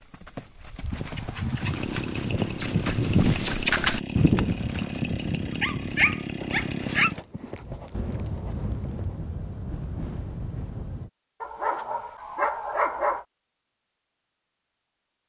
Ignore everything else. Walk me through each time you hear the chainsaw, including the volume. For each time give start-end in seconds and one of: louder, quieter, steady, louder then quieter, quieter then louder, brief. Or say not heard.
1.6-7.2 steady.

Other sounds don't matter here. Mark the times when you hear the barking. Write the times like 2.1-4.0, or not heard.
0.9-3.5, 5.6-7.1, 11.4-13.2.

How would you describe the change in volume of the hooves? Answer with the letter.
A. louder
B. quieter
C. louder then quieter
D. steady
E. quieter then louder
C.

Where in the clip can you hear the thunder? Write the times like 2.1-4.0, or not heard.
7.9-11.1.